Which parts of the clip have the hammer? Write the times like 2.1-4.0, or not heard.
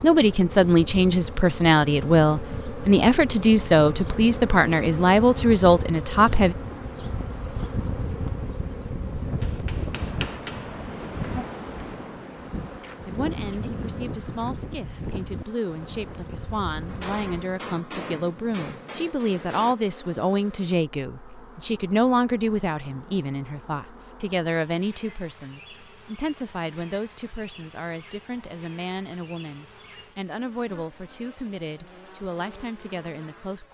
9.4-11.2, 16.9-19.8.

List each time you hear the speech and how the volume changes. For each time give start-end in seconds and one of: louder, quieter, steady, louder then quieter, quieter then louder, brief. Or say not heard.
0.0-6.5 steady
13.1-33.6 louder then quieter.